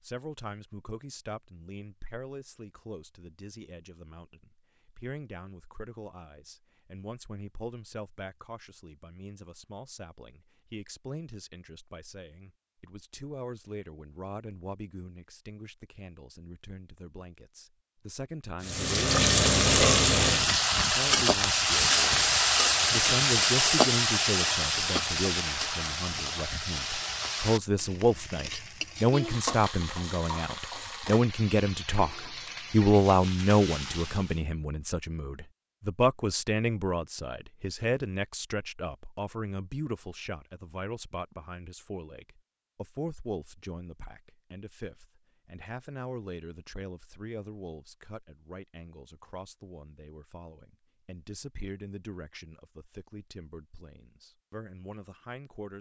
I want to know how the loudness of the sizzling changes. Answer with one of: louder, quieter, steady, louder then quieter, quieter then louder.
quieter.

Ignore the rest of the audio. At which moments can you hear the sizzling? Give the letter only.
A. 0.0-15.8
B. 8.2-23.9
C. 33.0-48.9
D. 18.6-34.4
D.